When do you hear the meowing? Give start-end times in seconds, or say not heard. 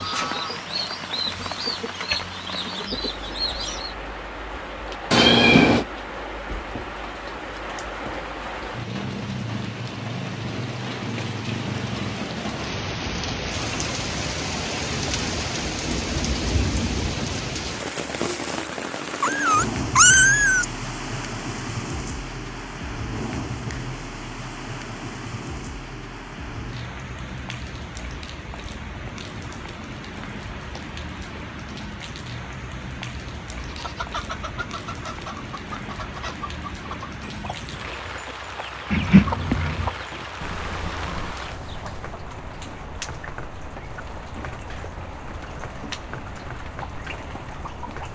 5.1-5.8, 19.2-20.6, 38.9-39.9.